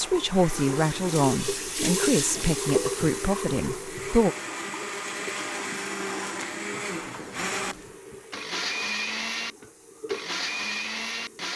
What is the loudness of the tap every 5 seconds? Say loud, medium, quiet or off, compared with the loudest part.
loud, quiet, medium.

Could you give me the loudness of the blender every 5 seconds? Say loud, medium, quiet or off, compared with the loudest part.
medium, loud, loud.